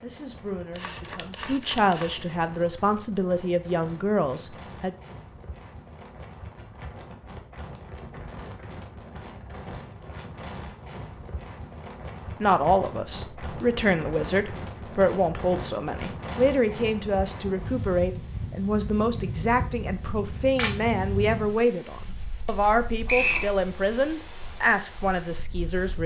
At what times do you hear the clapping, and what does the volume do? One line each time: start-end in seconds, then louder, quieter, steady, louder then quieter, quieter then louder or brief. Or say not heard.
not heard.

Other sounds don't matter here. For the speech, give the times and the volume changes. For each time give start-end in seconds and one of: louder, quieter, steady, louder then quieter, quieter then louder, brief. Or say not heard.
0.0-5.0 louder
12.4-26.0 steady.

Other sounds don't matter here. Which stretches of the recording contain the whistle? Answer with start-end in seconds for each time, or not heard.
23.1-23.5.